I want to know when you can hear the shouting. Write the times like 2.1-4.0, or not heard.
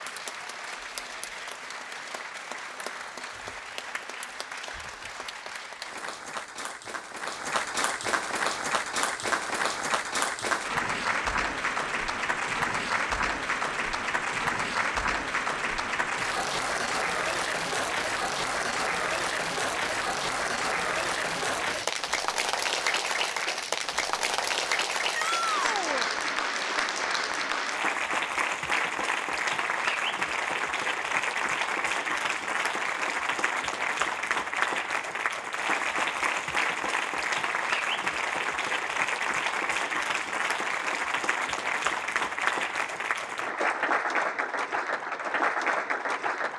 25.1-26.1.